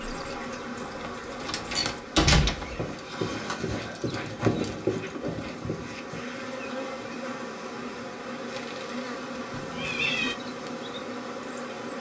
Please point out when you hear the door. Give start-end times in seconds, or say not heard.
1.4-2.9.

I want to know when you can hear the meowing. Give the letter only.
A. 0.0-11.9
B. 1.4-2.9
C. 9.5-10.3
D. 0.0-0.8
C.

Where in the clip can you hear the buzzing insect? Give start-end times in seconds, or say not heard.
0.0-11.9.